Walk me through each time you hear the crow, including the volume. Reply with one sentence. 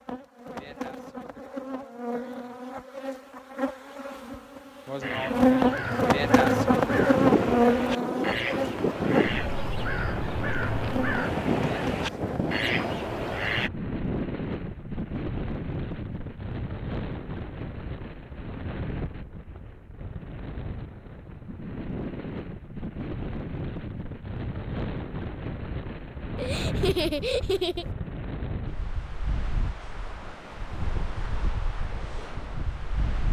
The crow can be heard from 5.0 to 13.7 s, at a steady volume.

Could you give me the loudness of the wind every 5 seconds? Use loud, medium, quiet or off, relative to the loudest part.
off, loud, loud, medium, medium, medium, medium.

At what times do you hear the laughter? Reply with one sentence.
You can hear the laughter from 26.4 to 27.9 s.